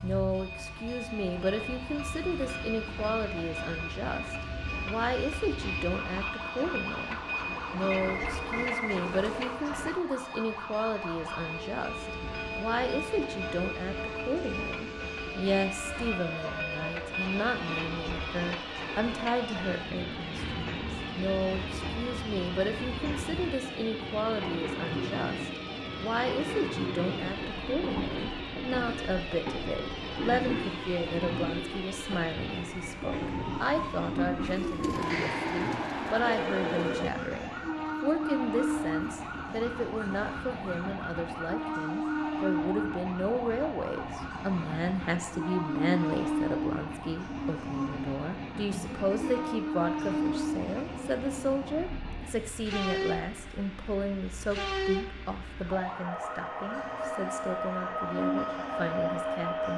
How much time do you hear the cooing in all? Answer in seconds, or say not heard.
3 s.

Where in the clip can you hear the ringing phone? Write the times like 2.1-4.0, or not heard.
7.9-9.6, 35.0-37.1.